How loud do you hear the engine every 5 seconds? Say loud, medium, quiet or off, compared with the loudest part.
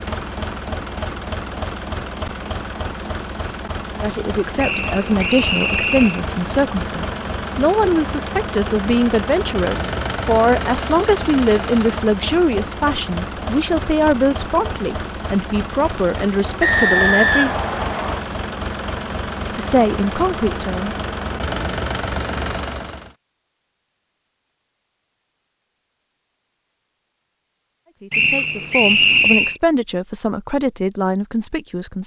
loud, loud, loud, loud, loud, off, off.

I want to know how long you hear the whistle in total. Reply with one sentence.
You can hear the whistle for 5 seconds altogether.